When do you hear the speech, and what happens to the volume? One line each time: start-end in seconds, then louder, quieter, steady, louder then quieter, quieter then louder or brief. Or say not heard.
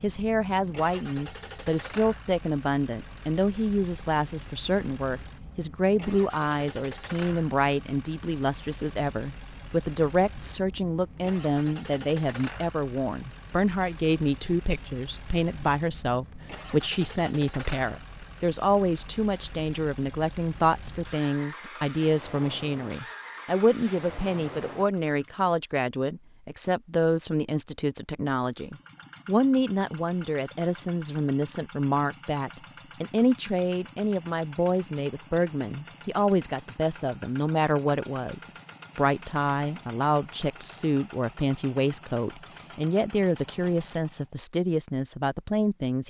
0.0-46.0 steady.